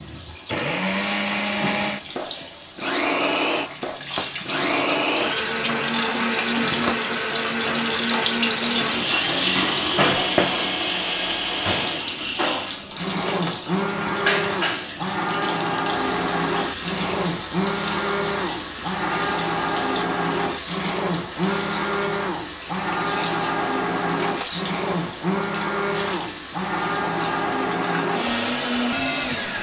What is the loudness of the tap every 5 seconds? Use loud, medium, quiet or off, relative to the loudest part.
medium, loud, loud, medium, medium, medium.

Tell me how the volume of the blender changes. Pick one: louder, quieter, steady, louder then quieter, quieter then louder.
steady.